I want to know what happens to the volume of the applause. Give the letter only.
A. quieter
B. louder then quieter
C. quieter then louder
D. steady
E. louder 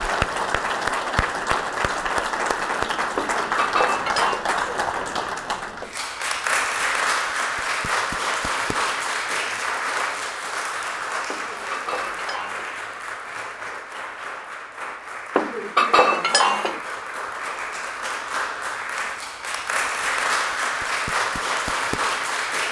C.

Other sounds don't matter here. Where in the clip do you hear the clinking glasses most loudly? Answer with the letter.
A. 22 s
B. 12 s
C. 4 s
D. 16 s
D.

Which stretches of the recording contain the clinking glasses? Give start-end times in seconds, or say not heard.
3.1-4.5, 11.3-12.8, 15.3-16.8.